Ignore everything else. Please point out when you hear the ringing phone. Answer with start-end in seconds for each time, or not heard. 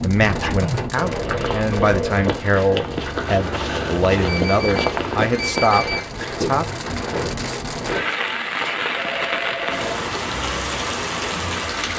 0.4-2.3, 4.2-6.1, 8.9-10.2.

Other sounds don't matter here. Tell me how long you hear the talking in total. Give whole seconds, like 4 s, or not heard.
7 s.